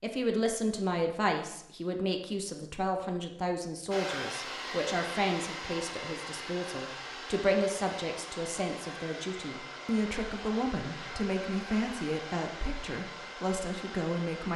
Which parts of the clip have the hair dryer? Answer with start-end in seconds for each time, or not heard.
3.9-14.5.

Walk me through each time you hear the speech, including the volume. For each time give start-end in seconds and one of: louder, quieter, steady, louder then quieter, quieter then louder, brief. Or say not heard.
0.0-14.5 steady.